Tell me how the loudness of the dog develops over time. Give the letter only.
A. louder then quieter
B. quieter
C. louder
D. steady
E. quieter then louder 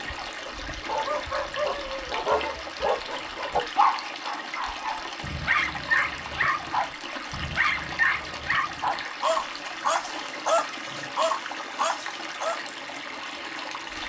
D.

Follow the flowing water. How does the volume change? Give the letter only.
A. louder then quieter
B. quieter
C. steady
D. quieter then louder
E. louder
C.